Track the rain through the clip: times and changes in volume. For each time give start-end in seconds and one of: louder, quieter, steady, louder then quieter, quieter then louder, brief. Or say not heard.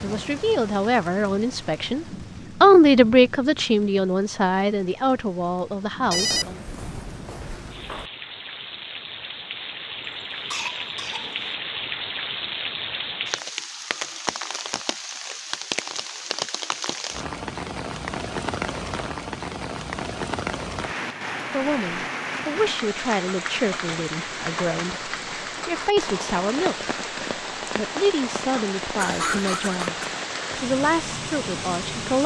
0.0-32.2 louder.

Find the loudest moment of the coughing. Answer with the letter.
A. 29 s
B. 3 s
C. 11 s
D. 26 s
A.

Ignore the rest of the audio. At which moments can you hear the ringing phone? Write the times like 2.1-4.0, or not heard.
6.1-8.1.